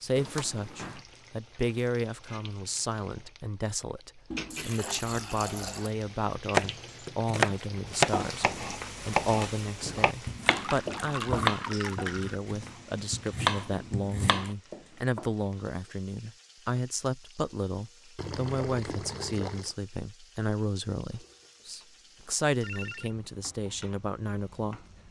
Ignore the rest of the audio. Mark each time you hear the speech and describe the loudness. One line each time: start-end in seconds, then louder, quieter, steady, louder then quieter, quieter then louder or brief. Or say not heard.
0.0-24.9 steady.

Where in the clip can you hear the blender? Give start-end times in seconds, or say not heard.
not heard.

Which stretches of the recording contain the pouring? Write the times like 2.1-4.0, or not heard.
4.3-6.0, 10.4-12.4, 18.1-19.8.